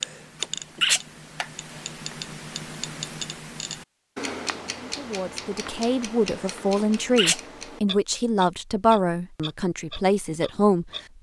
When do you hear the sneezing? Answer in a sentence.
You can hear the sneezing from 0.0 to 1.0 s and from 6.4 to 7.4 s.